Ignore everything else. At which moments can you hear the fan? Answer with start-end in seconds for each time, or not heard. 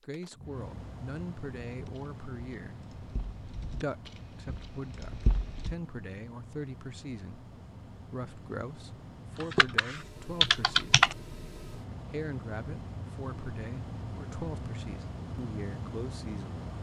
0.0-16.7.